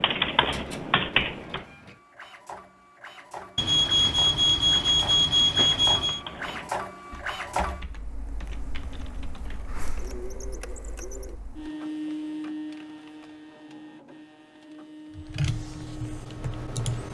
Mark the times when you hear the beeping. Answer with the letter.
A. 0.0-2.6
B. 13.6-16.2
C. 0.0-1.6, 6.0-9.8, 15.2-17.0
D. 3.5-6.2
D.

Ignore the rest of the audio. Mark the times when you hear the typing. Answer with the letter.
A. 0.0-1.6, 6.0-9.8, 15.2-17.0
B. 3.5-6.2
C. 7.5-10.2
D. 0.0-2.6
A.